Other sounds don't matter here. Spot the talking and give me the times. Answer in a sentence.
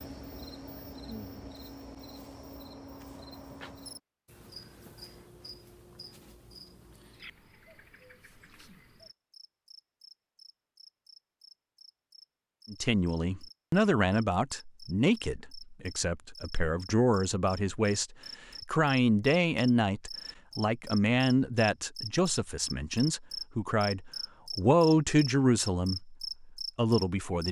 You can hear the talking from 12.7 to 27.4 s.